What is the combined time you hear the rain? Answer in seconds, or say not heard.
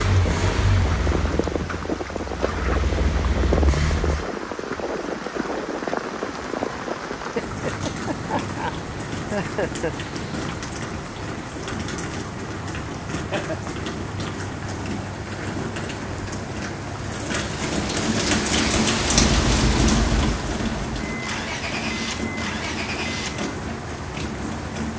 25 s.